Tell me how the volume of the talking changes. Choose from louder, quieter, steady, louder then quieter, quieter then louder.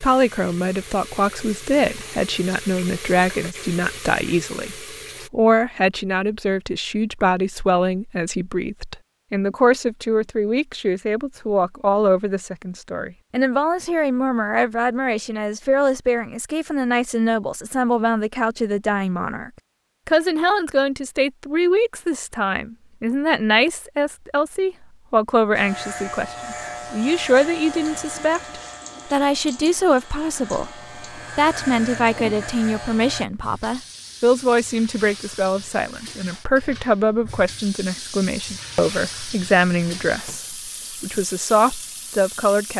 steady.